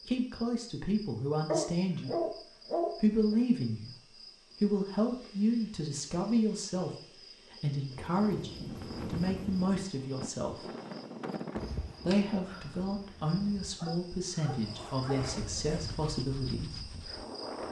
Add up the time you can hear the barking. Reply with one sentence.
You can hear the barking for 4 seconds altogether.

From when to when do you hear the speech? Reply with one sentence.
The speech can be heard from 0.1 to 10.7 s and from 12.0 to 16.9 s.